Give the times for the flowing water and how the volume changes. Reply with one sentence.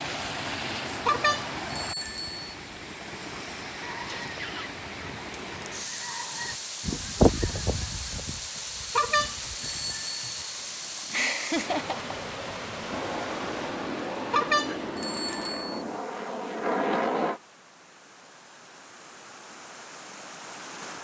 The flowing water can be heard from 0.0 to 20.9 s, getting quieter.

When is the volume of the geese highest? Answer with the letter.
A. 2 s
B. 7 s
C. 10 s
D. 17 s
B.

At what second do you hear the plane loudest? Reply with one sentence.
The loudest moment of the plane is at 17 seconds.